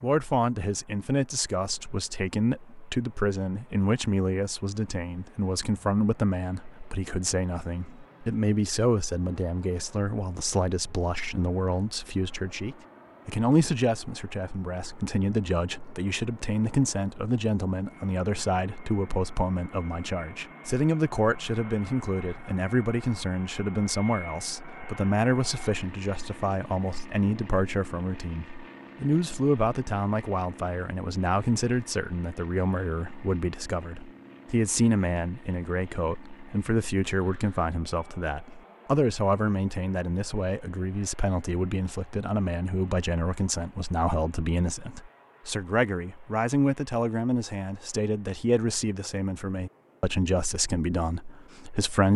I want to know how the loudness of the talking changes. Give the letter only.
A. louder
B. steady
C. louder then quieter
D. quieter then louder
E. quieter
B.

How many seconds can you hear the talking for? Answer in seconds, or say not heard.
52 s.